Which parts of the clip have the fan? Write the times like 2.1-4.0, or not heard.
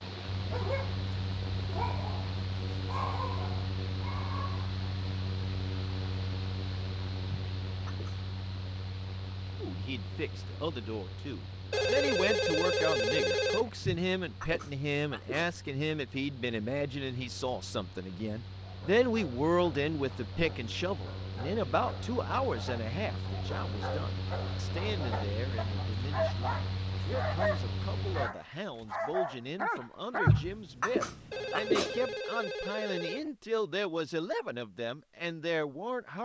0.0-28.4.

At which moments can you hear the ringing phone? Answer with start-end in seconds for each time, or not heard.
11.7-13.7, 31.3-33.3.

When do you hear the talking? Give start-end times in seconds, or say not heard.
9.6-36.2.